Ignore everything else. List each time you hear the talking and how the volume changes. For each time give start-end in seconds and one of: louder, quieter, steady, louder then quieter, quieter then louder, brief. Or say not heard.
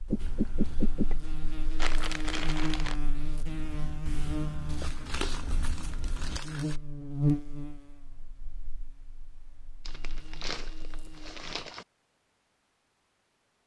not heard.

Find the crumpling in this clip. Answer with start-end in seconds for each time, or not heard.
1.8-3.0, 4.8-6.8, 9.8-11.8.